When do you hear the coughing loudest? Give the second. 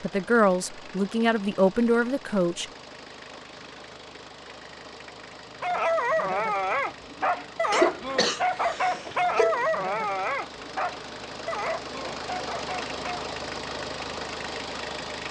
8 s.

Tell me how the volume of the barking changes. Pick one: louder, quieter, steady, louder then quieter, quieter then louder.
quieter.